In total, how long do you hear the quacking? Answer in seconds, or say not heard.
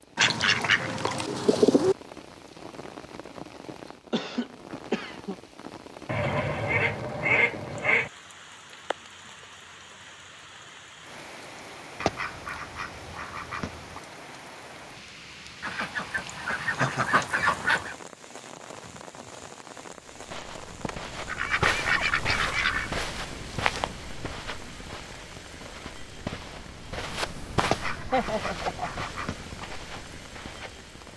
12 s.